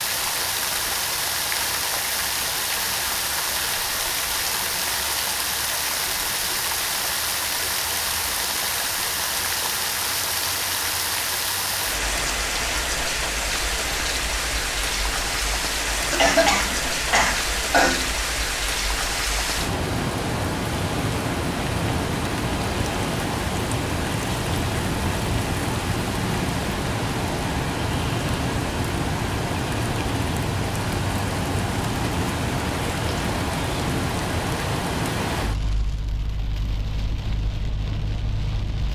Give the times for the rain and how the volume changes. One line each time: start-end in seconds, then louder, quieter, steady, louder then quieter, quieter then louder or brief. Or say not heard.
0.0-38.8 steady.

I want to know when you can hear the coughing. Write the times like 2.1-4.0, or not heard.
16.1-18.1.